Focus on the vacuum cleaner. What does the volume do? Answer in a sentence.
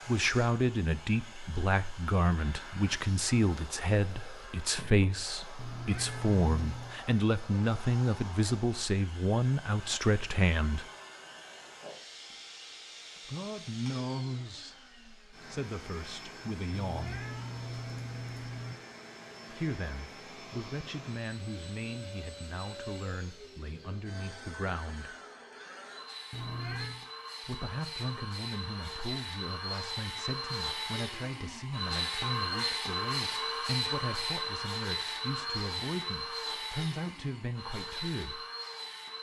The volume of the vacuum cleaner goes up.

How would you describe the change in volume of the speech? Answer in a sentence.
The volume of the speech goes down.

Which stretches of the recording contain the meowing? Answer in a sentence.
The meowing can be heard from 5.5 to 7.0 s, from 16.7 to 18.8 s and from 26.3 to 27.0 s.